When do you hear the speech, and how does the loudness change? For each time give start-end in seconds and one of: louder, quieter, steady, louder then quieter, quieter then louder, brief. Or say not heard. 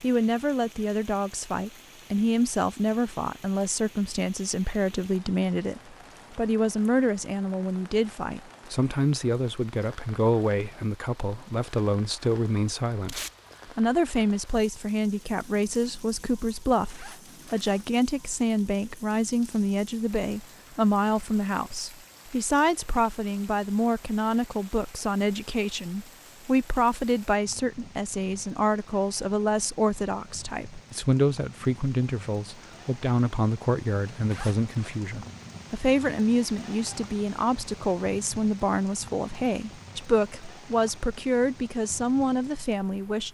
0.0-43.2 steady.